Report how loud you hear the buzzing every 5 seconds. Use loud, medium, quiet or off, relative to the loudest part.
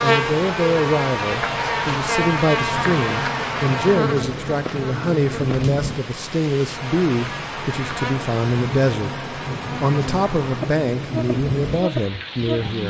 loud, medium, medium.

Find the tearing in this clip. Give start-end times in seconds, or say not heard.
not heard.